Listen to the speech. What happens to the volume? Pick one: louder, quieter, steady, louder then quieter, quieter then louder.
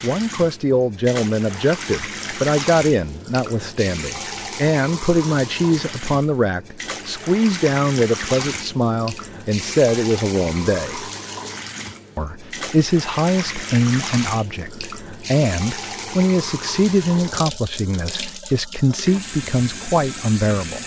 steady.